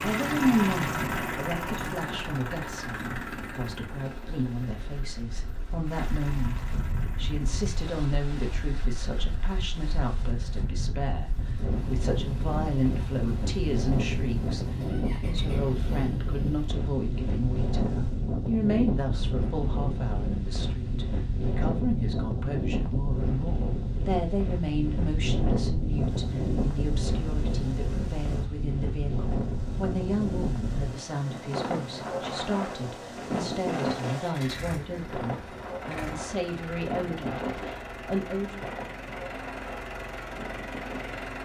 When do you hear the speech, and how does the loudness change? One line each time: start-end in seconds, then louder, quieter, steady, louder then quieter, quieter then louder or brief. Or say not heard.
0.0-38.6 steady.